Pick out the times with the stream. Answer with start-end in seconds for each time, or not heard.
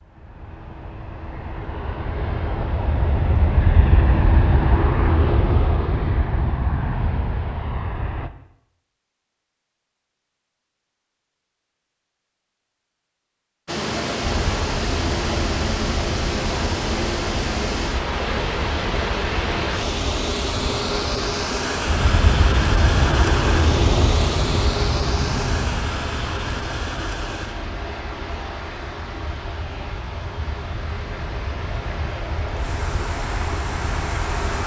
13.7-34.6.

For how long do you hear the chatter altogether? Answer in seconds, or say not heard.
not heard.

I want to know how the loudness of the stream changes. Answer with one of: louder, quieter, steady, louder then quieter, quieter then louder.
quieter.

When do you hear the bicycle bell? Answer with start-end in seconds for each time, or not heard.
not heard.